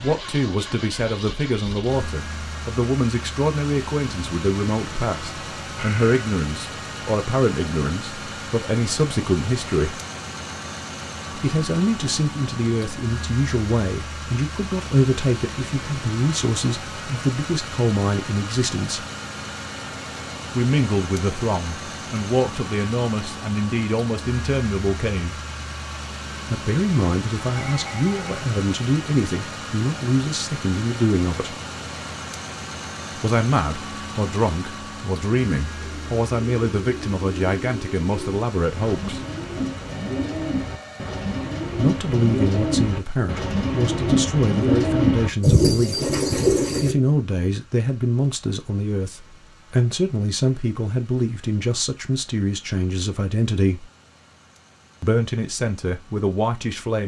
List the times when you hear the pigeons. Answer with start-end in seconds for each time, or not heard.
35.6-47.0.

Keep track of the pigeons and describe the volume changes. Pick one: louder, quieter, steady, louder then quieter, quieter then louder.
louder.